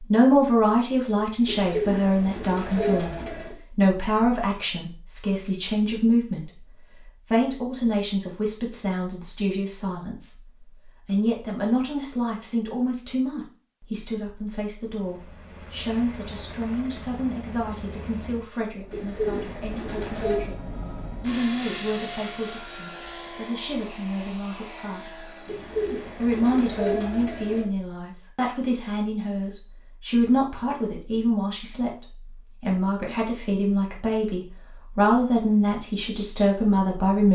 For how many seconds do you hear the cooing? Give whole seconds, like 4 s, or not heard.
6 s.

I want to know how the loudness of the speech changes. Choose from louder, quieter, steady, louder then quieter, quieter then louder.
quieter then louder.